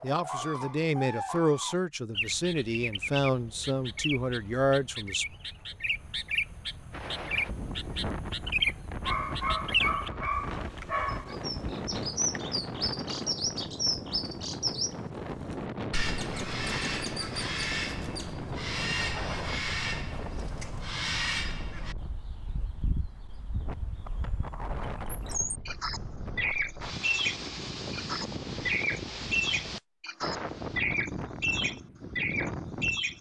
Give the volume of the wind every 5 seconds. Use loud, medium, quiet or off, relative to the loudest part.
off, loud, loud, loud, medium, loud, loud.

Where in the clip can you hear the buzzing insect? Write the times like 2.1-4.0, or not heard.
not heard.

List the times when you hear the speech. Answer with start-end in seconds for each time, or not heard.
0.0-5.2.